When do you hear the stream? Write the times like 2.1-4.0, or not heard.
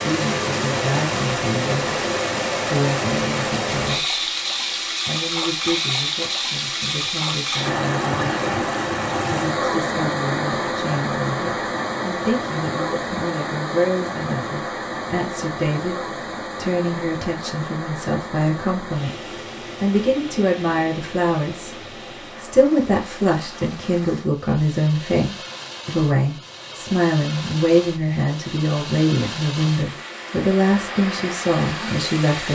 0.0-32.5.